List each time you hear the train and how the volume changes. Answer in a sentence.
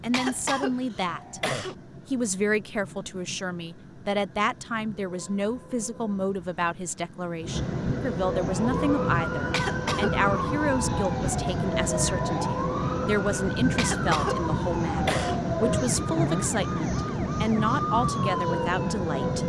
You can hear the train from 0.0 to 19.4 s, getting louder.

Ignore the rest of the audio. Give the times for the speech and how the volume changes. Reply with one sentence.
You can hear the speech briefly from 0.0 to 1.4 s; and from 2.0 to 19.4 s, at a steady volume.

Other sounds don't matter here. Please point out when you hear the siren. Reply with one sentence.
The siren can be heard from 8.2 to 19.4 s.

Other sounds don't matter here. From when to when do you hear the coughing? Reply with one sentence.
The coughing can be heard from 0.1 to 1.8 s, from 9.5 to 10.1 s and from 13.8 to 15.4 s.